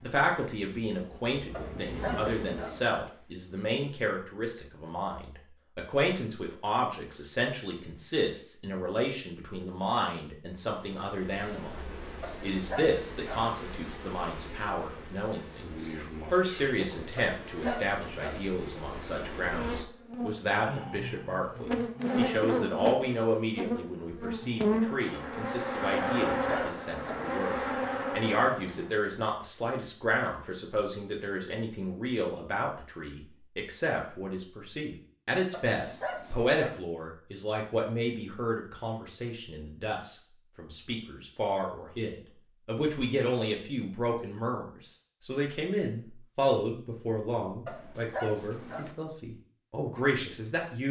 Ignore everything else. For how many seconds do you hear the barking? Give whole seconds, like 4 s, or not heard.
8 s.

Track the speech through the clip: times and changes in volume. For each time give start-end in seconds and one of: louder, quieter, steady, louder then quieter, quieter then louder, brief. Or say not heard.
0.0-50.8 steady.